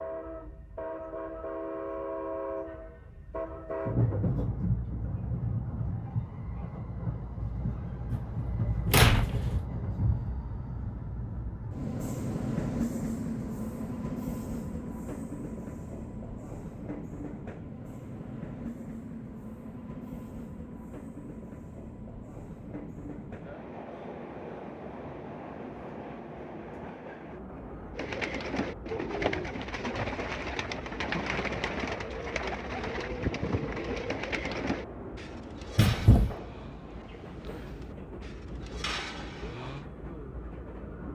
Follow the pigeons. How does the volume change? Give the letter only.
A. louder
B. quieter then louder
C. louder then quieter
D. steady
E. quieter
E.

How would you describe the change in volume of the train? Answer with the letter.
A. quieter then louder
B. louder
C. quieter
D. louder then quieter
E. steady
C.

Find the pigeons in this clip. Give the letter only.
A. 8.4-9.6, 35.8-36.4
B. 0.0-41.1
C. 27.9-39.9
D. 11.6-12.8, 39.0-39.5
C.